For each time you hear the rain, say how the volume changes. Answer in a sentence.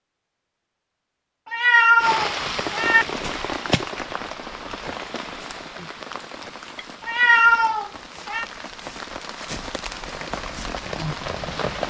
The rain can be heard from 1.9 to 11.8 s, getting quieter then louder.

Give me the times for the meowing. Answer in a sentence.
The meowing can be heard from 1.5 to 3.0 s and from 7.0 to 8.4 s.